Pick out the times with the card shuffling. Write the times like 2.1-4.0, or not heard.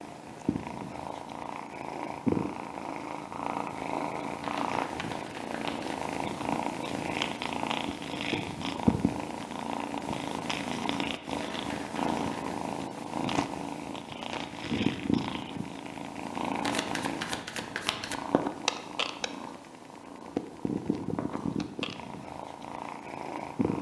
4.4-6.0, 11.3-12.6, 16.6-18.1.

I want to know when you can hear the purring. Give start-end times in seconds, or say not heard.
0.0-23.7.